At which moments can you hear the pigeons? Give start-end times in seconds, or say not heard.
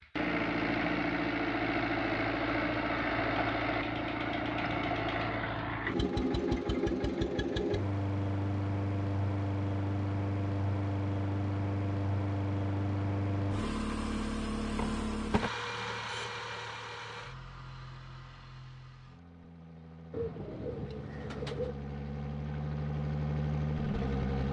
20.1-21.8.